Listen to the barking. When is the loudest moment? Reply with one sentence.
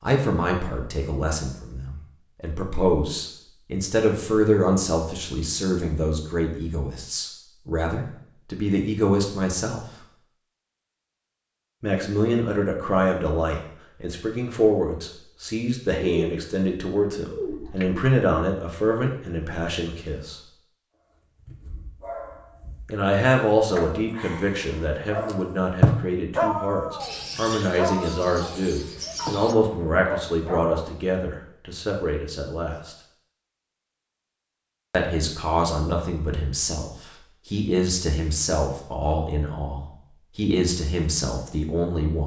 The volume of the barking peaks at 26 seconds.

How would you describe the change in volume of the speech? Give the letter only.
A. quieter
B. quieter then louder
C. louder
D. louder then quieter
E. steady
E.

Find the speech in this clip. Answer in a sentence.
You can hear the speech from 0.0 to 10.1 s, from 11.8 to 20.4 s, from 22.9 to 33.0 s and from 34.9 to 42.2 s.